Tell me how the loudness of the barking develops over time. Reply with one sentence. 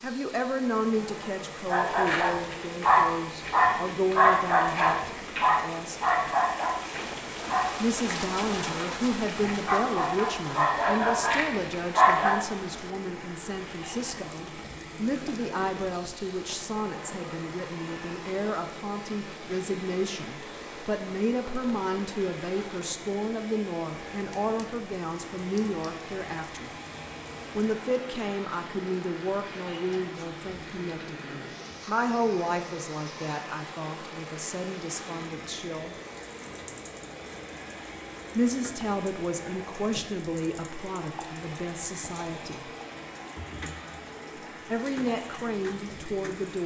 The loudness of the barking goes down, then up.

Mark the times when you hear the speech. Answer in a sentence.
The speech can be heard from 0.0 to 6.0 s, from 7.8 to 26.7 s, from 27.6 to 36.0 s, from 38.4 to 42.7 s and from 44.6 to 46.6 s.